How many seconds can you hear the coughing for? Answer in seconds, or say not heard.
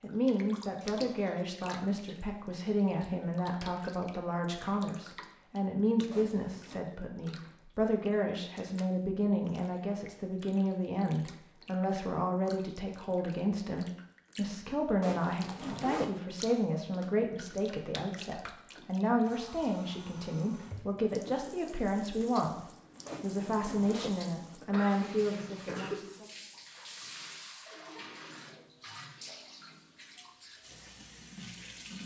2 s.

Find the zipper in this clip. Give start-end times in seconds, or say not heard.
6.1-6.8, 15.0-16.2, 23.1-24.2.